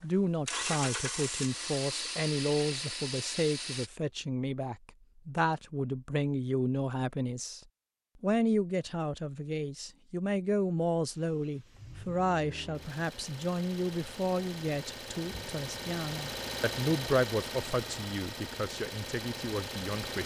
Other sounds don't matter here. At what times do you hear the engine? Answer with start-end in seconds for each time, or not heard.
0.0-3.9, 11.2-20.2.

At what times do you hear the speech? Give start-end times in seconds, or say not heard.
0.0-7.6, 8.2-20.2.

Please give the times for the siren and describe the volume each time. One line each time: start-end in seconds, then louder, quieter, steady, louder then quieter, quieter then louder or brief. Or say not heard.
not heard.